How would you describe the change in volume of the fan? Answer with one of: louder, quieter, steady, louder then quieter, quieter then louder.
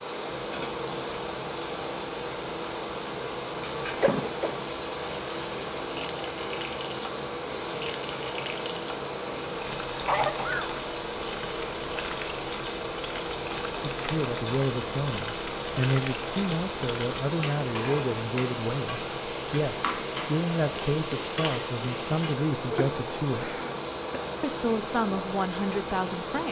steady.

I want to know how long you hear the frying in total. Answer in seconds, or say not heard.
22 s.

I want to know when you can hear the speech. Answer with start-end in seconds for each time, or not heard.
13.8-23.6, 24.4-26.4.